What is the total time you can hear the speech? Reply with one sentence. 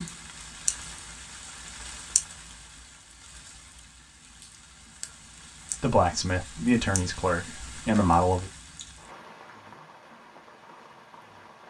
You can hear the speech for 3 seconds altogether.